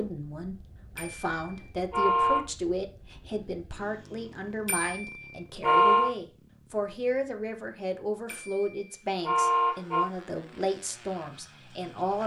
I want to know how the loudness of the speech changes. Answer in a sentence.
The volume of the speech stays about the same.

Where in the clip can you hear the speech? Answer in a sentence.
The speech can be heard from 0.0 to 12.2 s.